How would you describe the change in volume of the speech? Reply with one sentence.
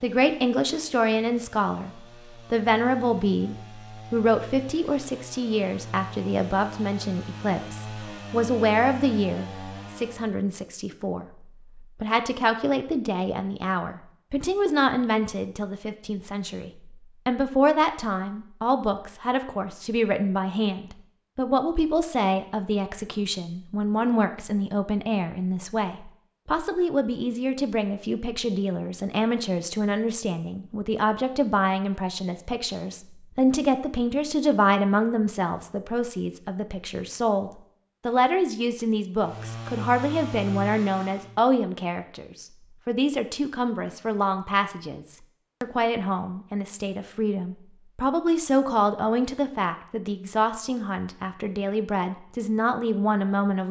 The loudness of the speech stays about the same.